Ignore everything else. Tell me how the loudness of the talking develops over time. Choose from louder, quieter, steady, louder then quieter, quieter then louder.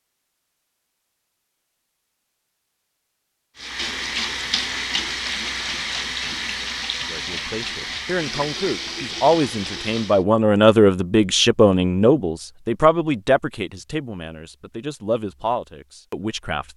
louder then quieter.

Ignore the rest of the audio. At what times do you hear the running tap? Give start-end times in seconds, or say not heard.
3.5-10.2.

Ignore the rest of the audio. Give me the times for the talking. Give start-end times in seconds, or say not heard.
7.0-16.7.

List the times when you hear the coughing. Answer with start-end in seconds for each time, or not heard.
not heard.